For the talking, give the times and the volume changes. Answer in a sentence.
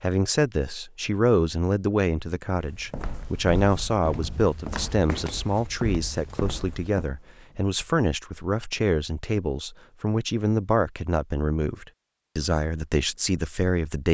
You can hear the talking from 0.0 to 14.0 s, at a steady volume.